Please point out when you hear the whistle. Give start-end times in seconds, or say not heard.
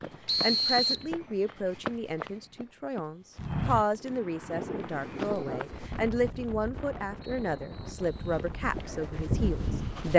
0.2-1.1, 7.2-8.4.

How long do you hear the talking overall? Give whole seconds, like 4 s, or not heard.
10 s.